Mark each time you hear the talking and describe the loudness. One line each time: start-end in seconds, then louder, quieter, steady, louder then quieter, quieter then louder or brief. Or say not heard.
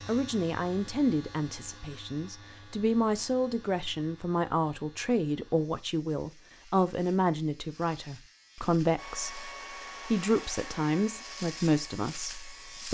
0.1-12.8 steady.